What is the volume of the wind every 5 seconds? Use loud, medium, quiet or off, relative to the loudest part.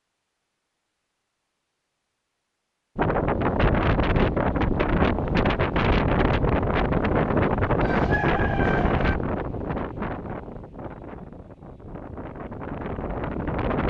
loud, loud, medium.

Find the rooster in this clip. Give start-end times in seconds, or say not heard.
7.8-9.2.